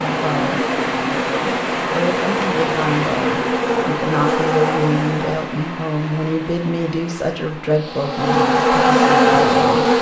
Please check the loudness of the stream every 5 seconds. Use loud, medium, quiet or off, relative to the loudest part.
loud, medium.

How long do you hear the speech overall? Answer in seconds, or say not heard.
10 s.